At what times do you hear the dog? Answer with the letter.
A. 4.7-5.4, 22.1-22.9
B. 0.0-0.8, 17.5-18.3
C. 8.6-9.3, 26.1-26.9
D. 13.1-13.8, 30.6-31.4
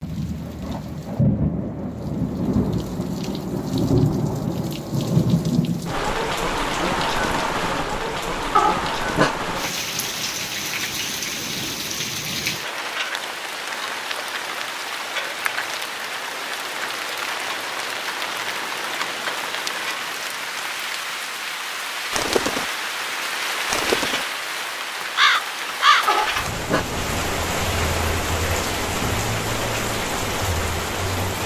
C.